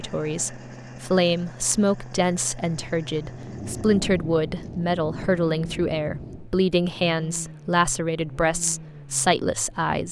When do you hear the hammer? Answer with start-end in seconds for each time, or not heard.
not heard.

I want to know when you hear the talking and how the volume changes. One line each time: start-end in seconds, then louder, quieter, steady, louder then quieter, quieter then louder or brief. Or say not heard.
0.0-10.0 steady.